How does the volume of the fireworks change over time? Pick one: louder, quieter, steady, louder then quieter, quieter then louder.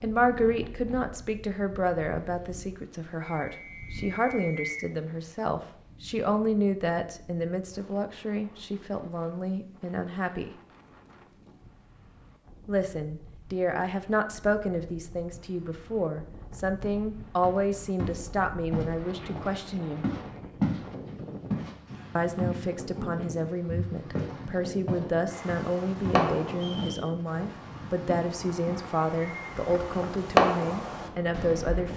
quieter then louder.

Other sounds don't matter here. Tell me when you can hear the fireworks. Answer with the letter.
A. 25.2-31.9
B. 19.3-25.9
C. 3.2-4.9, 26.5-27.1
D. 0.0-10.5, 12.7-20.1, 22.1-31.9
A.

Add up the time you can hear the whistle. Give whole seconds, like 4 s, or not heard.
2 s.